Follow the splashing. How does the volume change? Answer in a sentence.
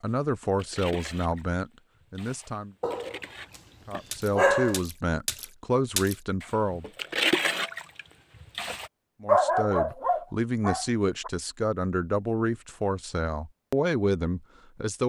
The loudness of the splashing goes up.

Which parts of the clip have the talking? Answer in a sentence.
You can hear the talking from 0.0 to 2.8 s, from 3.9 to 6.8 s and from 9.2 to 15.0 s.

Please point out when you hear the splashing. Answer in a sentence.
The splashing can be heard from 0.4 to 8.9 s.